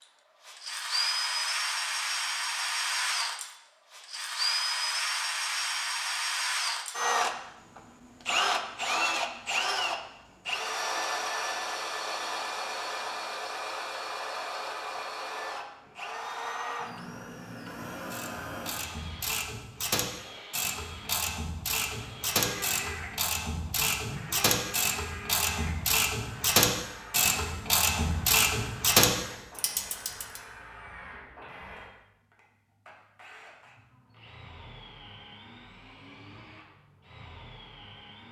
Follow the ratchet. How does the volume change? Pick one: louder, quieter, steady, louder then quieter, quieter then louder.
louder.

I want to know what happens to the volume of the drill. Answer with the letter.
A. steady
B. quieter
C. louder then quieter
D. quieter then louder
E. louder
B.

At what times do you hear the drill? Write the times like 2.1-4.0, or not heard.
0.0-38.2.